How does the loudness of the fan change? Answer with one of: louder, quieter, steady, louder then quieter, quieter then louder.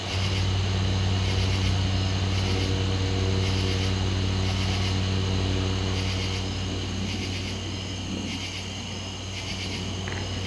quieter.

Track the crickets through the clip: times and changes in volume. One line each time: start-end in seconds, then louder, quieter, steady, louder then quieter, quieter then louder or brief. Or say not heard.
0.0-10.4 steady.